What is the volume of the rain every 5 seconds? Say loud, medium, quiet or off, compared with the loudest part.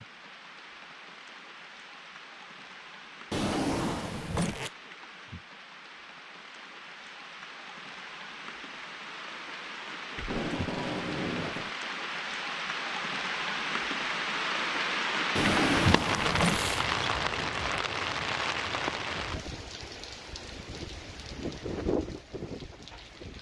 quiet, quiet, loud, loud, medium.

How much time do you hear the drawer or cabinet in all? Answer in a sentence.
You can hear the drawer or cabinet for 3 seconds altogether.